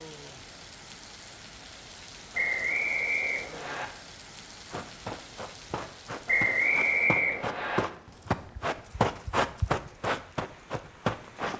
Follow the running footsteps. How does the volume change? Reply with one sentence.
The loudness of the running footsteps goes up.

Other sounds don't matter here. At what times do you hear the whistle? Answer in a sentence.
You can hear the whistle from 2.3 to 3.9 s and from 6.2 to 7.8 s.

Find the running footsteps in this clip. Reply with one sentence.
The running footsteps can be heard from 4.7 to 11.5 s.